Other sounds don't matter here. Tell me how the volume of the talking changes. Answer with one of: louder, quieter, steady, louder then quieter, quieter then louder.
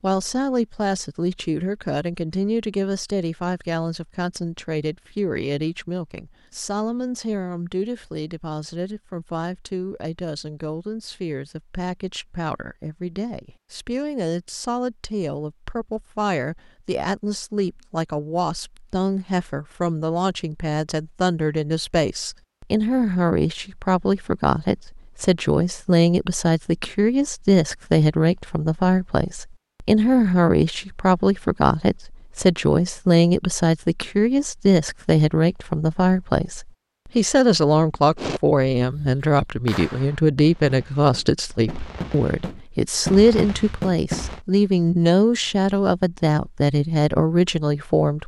louder.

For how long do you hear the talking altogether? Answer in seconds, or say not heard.
48 s.